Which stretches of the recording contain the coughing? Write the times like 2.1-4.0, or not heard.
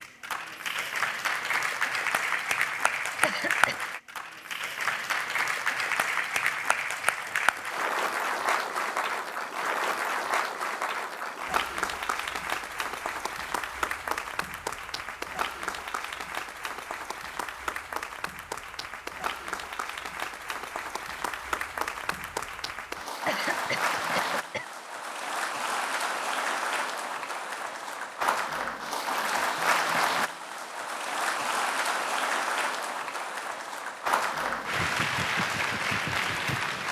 3.2-3.8, 23.2-24.6.